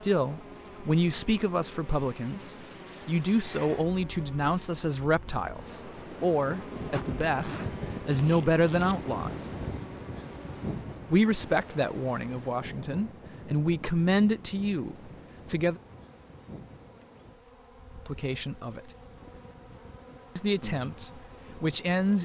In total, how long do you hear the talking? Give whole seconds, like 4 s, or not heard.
17 s.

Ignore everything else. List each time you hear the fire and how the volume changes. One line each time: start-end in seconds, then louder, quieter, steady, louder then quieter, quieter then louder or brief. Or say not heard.
not heard.